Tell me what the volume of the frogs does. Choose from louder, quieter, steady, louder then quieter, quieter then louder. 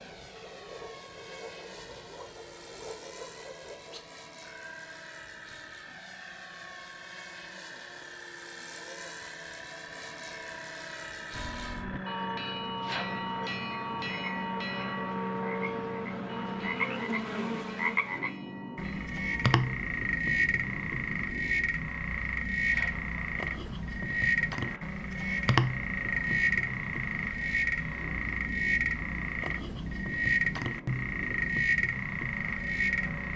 louder.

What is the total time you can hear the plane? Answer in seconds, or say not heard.
33 s.